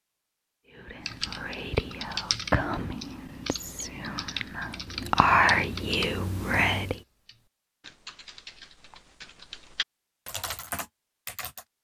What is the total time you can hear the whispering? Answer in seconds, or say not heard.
6 s.